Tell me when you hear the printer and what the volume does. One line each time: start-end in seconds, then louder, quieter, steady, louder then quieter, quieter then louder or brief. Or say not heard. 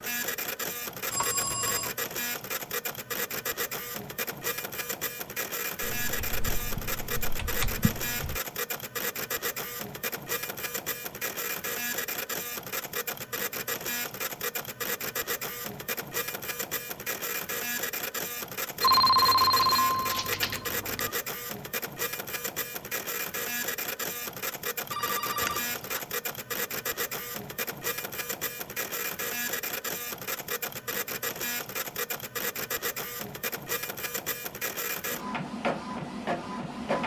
0.0-37.0 steady.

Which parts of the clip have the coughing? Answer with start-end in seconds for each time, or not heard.
not heard.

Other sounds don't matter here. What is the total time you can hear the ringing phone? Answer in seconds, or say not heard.
4 s.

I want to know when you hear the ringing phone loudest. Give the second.
19 s.